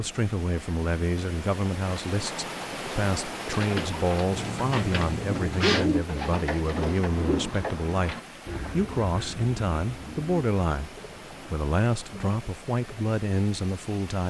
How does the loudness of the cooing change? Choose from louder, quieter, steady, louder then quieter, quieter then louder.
louder then quieter.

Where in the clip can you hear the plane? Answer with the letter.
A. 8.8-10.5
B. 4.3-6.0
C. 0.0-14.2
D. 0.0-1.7
B.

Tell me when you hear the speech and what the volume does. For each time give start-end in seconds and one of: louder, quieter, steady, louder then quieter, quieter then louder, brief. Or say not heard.
0.0-14.2 steady.